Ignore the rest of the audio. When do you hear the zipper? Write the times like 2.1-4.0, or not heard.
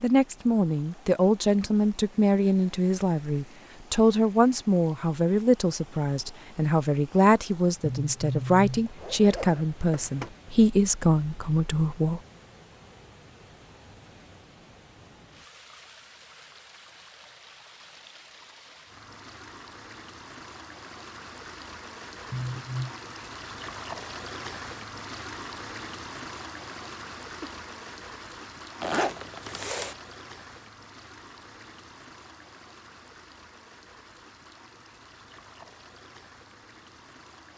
8.8-10.3, 28.8-29.9.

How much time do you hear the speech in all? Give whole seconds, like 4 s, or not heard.
12 s.